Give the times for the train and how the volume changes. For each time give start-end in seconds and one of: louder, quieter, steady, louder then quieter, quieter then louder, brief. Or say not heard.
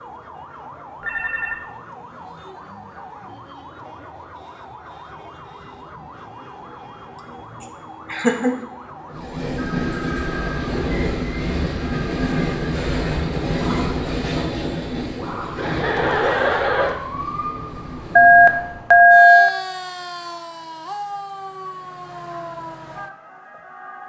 9.1-18.9 quieter.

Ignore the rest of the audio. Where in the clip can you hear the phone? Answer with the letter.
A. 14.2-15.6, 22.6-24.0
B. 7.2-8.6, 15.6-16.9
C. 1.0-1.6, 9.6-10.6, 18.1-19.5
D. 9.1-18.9
C.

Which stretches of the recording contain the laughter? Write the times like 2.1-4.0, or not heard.
7.2-8.6, 15.6-16.9.